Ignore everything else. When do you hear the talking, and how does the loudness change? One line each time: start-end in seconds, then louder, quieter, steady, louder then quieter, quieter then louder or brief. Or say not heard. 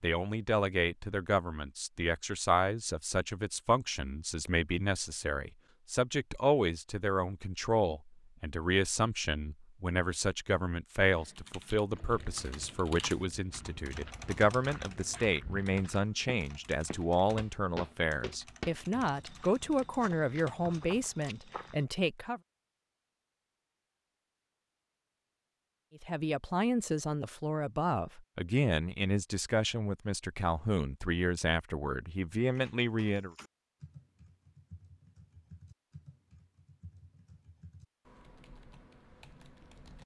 0.0-22.4 steady
26.0-33.4 steady.